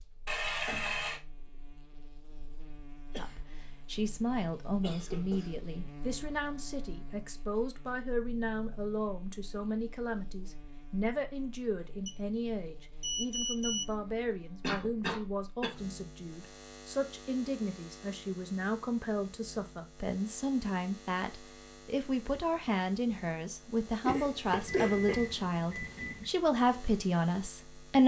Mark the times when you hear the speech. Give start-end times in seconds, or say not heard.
3.1-28.0.